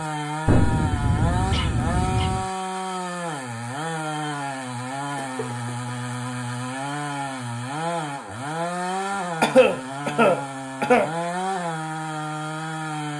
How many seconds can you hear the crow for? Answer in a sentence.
The crow can't be heard in this clip.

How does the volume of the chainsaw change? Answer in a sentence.
The volume of the chainsaw stays about the same.